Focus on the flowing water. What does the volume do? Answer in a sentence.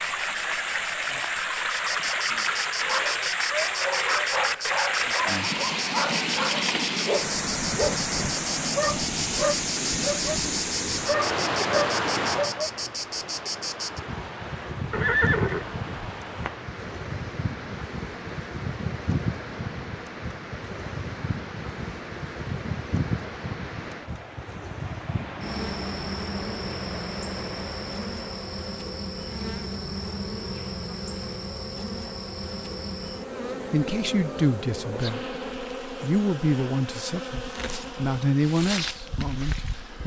The loudness of the flowing water goes down.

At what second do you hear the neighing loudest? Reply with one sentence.
The volume of the neighing peaks at 15 seconds.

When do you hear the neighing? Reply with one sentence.
You can hear the neighing from 14.9 to 16.5 s.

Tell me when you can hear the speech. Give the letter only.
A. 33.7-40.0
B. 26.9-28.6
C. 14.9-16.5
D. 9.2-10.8
A.